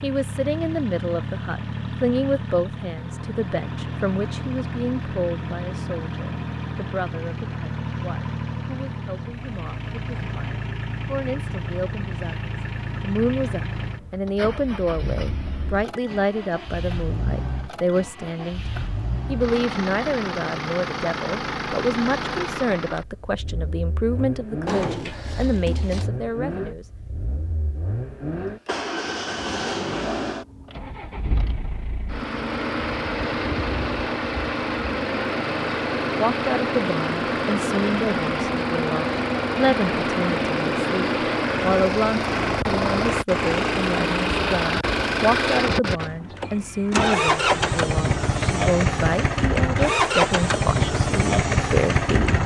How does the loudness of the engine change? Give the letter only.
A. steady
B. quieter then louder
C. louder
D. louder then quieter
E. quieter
C.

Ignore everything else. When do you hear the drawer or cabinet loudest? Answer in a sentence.
The volume of the drawer or cabinet peaks at 25 seconds.